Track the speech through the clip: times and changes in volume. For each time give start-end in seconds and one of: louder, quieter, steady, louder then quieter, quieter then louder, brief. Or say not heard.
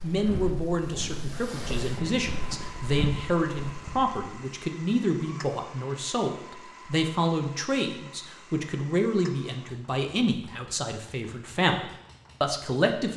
0.0-13.1 steady.